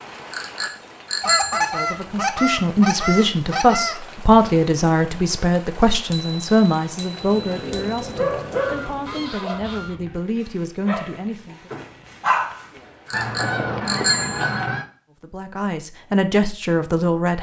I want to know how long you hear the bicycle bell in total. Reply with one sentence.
The bicycle bell can be heard for 5 seconds in total.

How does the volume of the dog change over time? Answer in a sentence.
The loudness of the dog goes down, then up.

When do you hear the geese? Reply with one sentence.
You can hear the geese from 1.2 to 4.0 s, from 8.5 to 10.0 s and from 13.1 to 14.8 s.